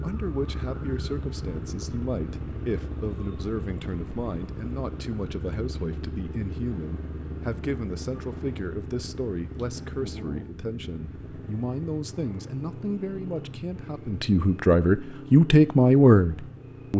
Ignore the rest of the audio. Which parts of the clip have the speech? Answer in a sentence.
The speech can be heard from 0.0 to 16.9 s.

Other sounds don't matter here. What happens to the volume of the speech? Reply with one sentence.
The volume of the speech goes up.